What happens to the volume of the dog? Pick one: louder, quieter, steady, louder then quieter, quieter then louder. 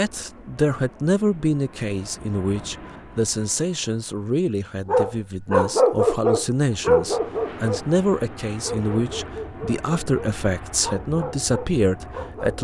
quieter.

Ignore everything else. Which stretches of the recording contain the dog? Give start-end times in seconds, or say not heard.
4.8-7.9, 8.6-12.5.